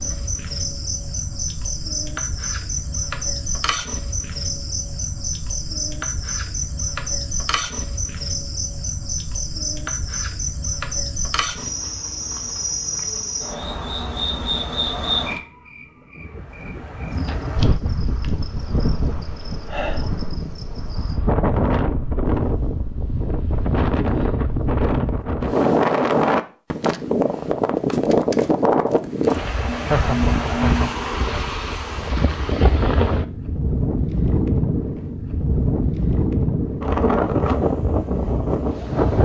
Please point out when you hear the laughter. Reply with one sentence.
You can hear the laughter from 29.7 to 31.4 s.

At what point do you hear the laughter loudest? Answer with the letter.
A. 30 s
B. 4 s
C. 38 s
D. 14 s
A.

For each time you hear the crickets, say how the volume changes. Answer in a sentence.
You can hear the crickets from 0.0 to 21.2 s, getting quieter.